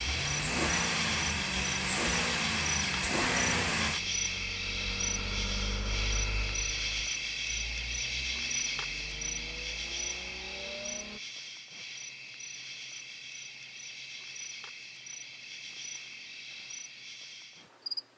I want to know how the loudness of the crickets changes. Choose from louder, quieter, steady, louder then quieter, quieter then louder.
quieter.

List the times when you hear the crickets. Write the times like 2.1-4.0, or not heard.
0.0-18.1.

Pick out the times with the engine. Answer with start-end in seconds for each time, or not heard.
0.0-11.2.